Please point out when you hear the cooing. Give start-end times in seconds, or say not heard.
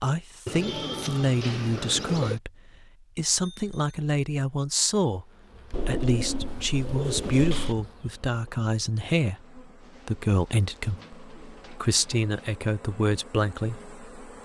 0.5-2.4, 5.7-7.8, 9.8-12.3.